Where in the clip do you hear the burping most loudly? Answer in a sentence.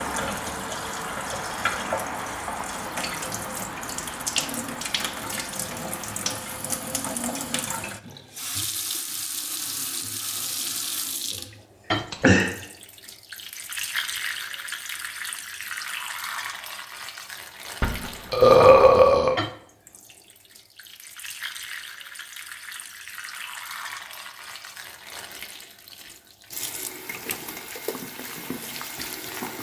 The volume of the burping peaks at 19 seconds.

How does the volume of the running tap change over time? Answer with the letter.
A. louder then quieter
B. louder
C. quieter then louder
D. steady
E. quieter
E.